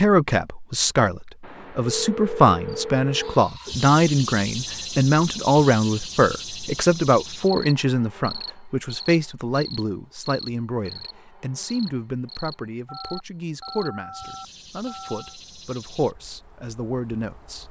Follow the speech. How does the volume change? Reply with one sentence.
The loudness of the speech goes down.